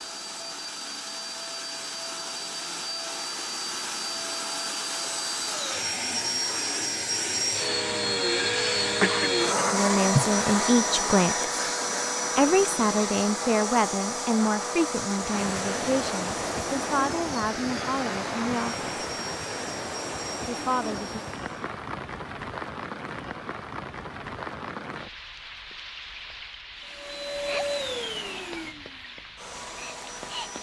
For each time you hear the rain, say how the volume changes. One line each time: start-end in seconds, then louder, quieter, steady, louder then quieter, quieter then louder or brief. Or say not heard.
15.1-30.5 quieter.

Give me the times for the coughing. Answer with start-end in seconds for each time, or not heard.
9.0-10.2.